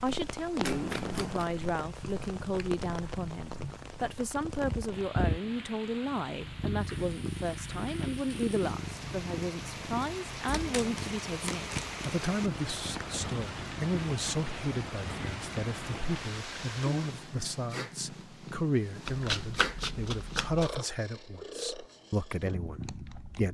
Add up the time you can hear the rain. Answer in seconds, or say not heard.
17 s.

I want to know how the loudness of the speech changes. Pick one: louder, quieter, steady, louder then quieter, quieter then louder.
steady.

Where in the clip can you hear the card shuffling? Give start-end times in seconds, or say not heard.
0.6-1.5, 10.4-12.0, 19.1-20.8.